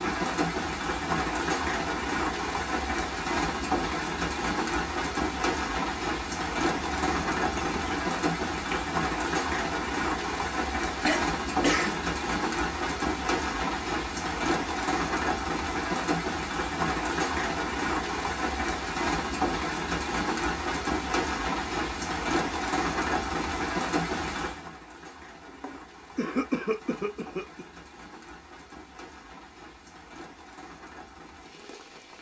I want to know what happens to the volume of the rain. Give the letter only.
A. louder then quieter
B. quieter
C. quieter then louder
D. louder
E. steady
B.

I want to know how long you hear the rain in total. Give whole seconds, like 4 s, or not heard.
32 s.